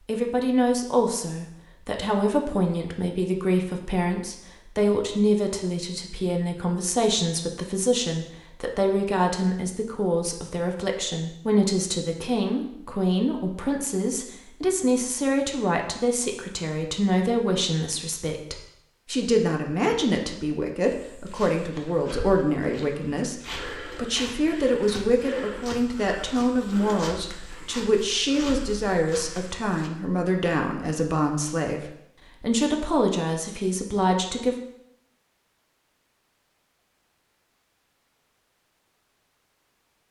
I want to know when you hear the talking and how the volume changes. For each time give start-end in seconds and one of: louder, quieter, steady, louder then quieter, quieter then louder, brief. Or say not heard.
0.1-34.5 steady.